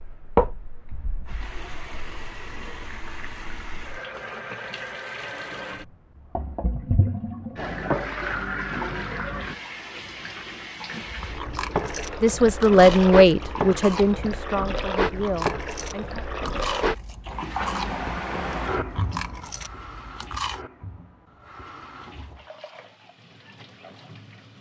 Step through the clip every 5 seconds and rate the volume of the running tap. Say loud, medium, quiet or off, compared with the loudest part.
loud, loud, loud, loud, quiet.